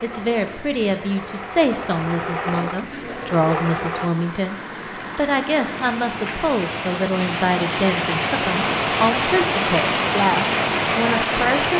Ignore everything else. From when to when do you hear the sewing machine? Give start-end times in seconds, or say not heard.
0.0-4.1.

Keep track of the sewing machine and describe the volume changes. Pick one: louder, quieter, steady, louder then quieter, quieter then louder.
louder.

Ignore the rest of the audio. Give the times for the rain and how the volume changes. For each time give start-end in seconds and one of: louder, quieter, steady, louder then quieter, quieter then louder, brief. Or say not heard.
0.0-11.7 louder.